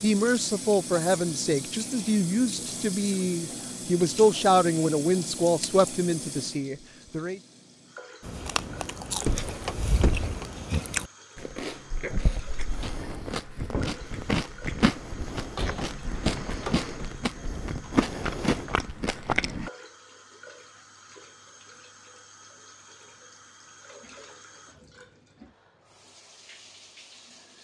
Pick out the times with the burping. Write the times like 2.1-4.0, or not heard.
not heard.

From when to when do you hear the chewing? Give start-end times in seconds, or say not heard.
8.2-19.7.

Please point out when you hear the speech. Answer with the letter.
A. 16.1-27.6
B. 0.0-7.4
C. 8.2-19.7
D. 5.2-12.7
B.